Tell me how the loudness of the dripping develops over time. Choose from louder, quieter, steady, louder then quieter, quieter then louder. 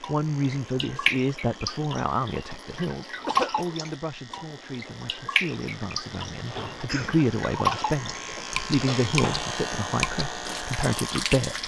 steady.